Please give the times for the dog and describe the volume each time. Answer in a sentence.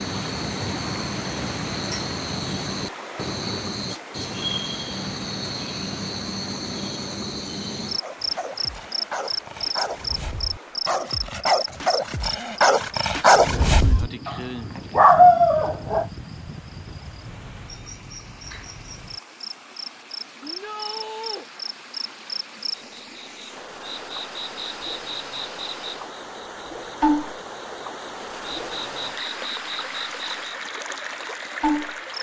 You can hear the dog from 8.0 to 16.1 s, getting louder.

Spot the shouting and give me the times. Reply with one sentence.
You can hear the shouting from 20.4 to 21.4 s.